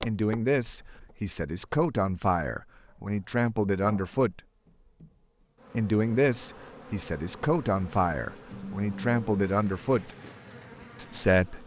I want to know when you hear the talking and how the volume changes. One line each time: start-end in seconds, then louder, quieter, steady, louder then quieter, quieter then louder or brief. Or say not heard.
0.0-4.4 quieter then louder
5.7-10.1 quieter then louder
10.9-11.6 brief.